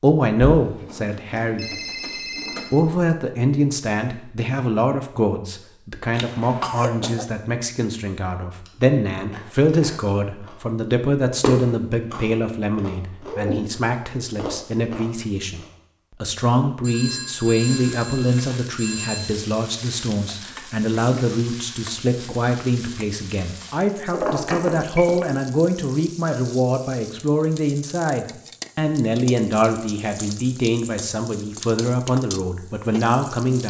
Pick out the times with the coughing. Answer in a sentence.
You can hear the coughing from 6.1 to 7.3 s.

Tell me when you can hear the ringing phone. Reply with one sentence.
You can hear the ringing phone from 0.6 to 2.8 s, from 16.8 to 19.4 s and from 24.1 to 25.2 s.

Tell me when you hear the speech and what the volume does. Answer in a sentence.
You can hear the speech briefly from 0.0 to 1.7 s; and from 2.7 to 33.6 s, at a steady volume.